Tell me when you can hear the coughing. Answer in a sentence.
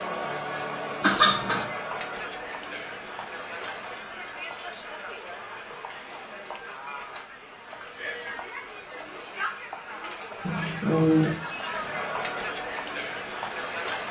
You can hear the coughing from 1.0 to 1.6 s and from 10.4 to 11.4 s.